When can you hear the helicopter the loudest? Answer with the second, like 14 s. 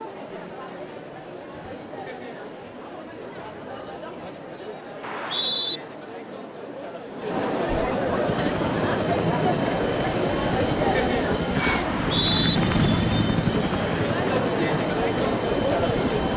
13 s.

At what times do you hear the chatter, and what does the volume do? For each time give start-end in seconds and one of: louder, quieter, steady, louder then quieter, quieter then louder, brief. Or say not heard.
0.0-16.3 louder.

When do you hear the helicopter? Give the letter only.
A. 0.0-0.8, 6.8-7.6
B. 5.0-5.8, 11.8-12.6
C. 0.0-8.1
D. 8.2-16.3
D.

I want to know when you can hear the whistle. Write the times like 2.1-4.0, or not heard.
5.0-5.8, 11.8-12.6.